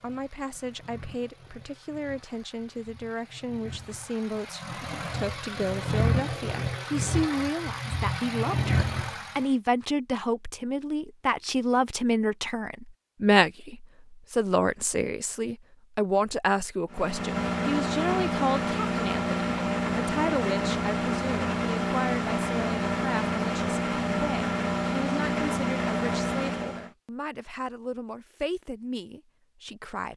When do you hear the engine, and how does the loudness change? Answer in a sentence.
The engine can be heard from 0.0 to 9.5 s, getting louder; and from 16.9 to 26.9 s, at a steady volume.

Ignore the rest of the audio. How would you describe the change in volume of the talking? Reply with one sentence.
The volume of the talking goes up, then down.